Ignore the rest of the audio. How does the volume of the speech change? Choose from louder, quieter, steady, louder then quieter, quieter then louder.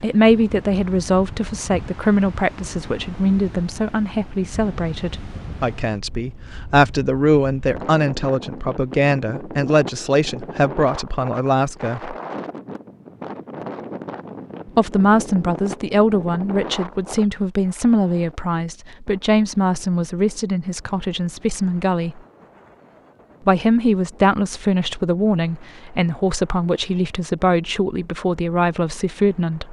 steady.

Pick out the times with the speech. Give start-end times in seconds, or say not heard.
0.0-12.2, 14.7-22.2, 23.4-29.6.